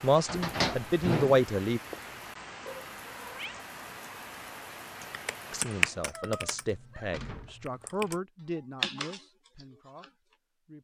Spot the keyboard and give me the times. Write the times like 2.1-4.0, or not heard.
5.0-10.1.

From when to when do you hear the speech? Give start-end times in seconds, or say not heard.
0.0-1.8, 5.5-10.1.